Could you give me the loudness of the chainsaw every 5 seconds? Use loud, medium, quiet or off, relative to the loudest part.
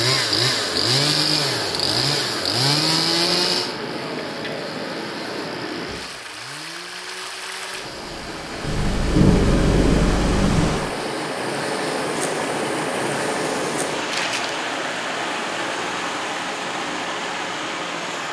loud, quiet, quiet, quiet.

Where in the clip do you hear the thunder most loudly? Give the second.
9 s.